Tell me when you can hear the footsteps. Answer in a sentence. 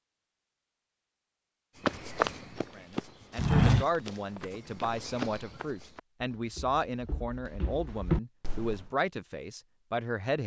The footsteps can be heard from 1.8 to 8.9 s.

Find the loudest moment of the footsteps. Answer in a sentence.
The loudest moment of the footsteps is at 4 seconds.